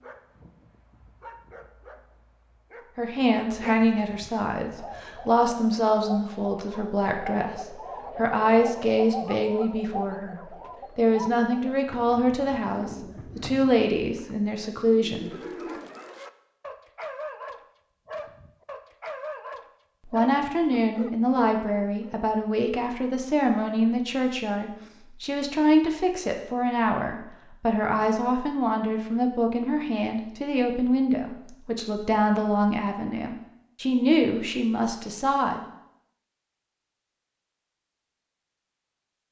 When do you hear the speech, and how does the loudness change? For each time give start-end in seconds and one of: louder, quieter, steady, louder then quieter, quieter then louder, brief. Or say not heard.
3.0-15.8 steady
20.1-35.6 steady.